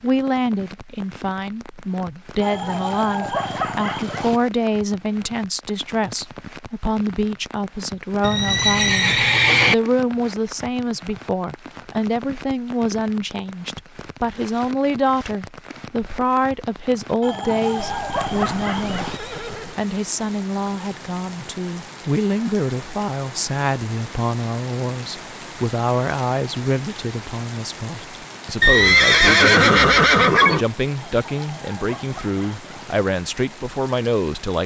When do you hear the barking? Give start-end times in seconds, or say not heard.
2.4-4.4, 17.2-19.2, 30.9-33.0.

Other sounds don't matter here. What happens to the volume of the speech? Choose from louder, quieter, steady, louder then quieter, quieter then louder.
steady.